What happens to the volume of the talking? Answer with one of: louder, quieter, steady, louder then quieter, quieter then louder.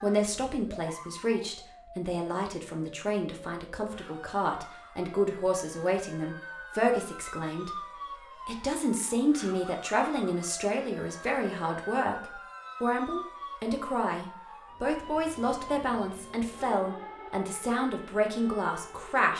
steady.